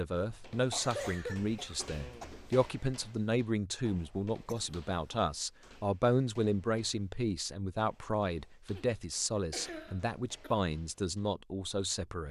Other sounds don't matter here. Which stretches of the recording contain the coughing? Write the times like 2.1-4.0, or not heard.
0.7-2.2, 4.5-5.2, 8.8-10.6.